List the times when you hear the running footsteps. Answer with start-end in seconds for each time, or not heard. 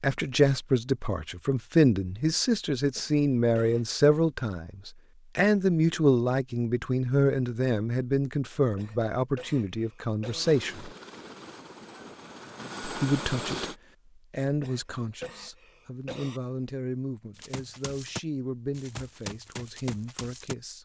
17.4-20.6.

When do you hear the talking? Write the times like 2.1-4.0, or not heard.
0.0-10.9, 12.8-20.7.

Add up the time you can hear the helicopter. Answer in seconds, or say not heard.
3 s.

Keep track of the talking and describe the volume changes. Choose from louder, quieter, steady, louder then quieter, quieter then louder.
quieter.